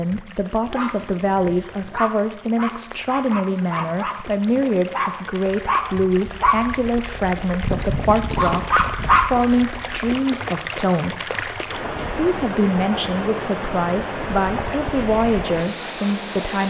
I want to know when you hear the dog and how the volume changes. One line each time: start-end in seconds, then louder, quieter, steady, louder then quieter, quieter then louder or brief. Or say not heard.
0.7-10.1 louder.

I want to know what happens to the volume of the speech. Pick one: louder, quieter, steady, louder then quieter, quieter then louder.
steady.